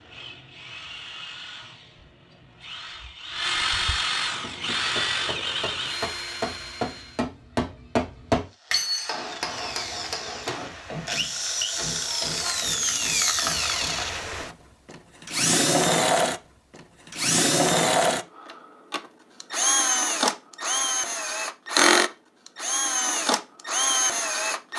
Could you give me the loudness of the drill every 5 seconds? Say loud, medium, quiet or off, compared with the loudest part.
medium, medium, medium, loud, loud.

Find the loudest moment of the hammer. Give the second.
8 s.